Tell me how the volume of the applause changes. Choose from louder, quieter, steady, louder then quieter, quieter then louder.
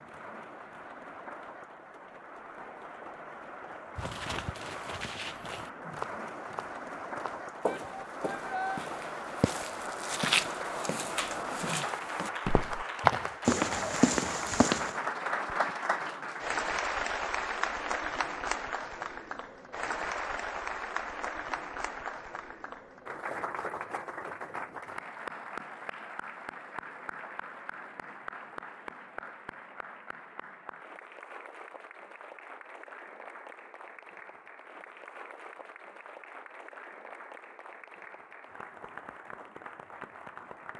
louder then quieter.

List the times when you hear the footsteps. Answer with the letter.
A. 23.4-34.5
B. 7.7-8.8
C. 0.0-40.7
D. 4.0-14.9
D.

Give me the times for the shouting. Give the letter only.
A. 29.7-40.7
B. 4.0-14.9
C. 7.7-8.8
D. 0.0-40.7
C.